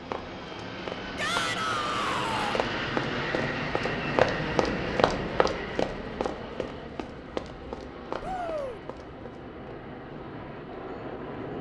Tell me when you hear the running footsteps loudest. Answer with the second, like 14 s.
4 s.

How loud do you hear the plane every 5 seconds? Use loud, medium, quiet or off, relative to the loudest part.
loud, medium, medium.